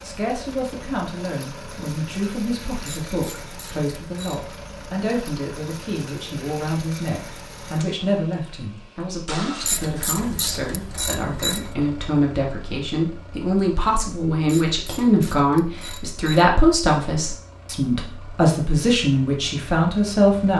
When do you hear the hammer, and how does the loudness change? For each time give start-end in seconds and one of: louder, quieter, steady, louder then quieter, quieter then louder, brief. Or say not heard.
not heard.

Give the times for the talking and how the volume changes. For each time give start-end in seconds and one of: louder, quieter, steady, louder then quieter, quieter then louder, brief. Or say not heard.
0.0-20.5 louder.